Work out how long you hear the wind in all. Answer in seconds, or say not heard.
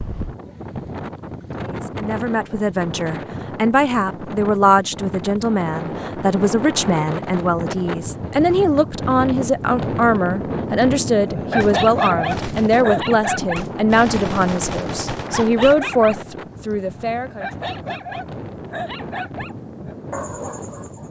21 s.